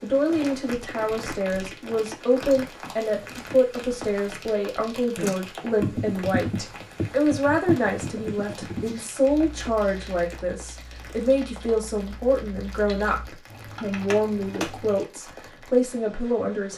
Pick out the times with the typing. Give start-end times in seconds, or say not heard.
5.2-15.1.